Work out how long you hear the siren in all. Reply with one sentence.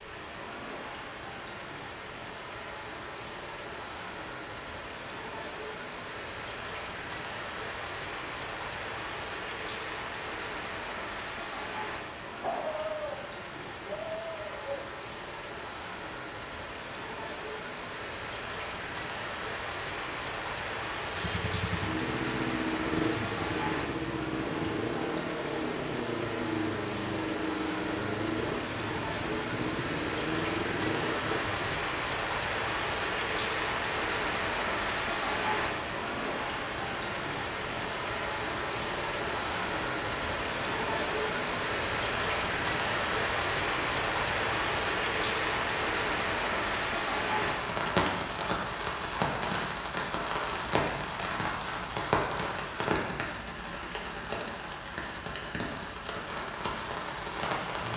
You can't hear the siren here.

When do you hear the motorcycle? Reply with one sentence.
The motorcycle can be heard from 21.1 to 31.9 s.